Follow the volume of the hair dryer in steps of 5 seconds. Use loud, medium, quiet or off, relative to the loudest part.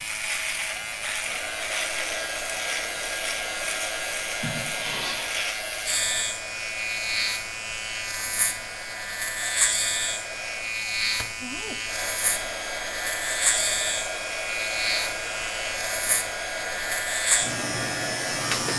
loud, medium, loud, loud.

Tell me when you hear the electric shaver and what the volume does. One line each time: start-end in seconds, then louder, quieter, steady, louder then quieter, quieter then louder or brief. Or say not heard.
0.0-18.7 steady.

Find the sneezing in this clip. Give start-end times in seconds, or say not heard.
4.4-5.3.